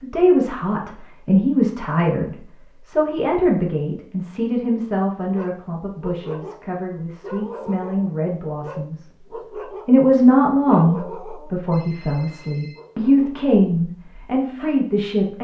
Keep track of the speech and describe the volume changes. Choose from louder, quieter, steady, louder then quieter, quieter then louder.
quieter then louder.